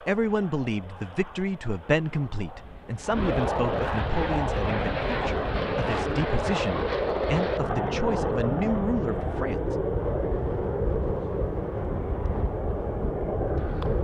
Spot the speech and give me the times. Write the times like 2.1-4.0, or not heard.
0.0-9.8.